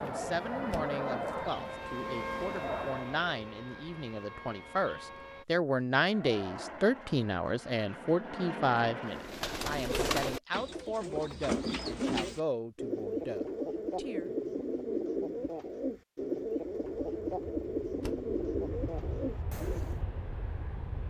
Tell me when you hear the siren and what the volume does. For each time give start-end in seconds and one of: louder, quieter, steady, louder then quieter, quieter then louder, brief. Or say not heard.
0.0-5.5 louder then quieter.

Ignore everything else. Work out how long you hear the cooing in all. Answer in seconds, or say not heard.
11 s.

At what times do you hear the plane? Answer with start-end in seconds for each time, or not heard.
0.0-3.3, 6.0-9.5, 16.8-21.0.